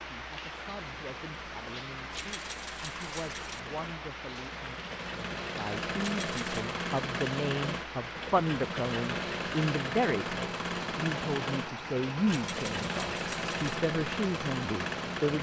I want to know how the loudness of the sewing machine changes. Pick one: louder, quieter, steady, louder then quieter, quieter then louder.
louder.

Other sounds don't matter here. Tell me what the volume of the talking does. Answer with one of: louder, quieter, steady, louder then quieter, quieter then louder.
louder.